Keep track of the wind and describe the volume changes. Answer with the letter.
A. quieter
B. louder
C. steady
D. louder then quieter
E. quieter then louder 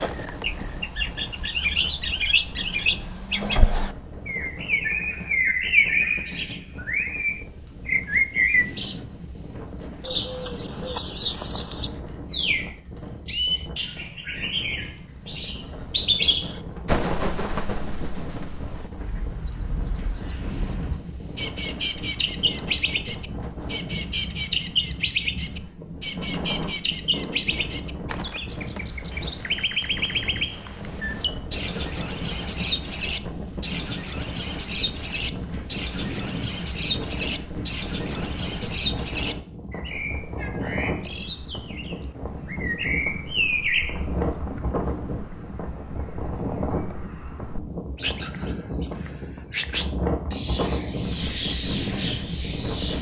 B.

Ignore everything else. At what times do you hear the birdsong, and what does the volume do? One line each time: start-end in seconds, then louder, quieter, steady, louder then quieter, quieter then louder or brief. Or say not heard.
0.0-52.9 quieter.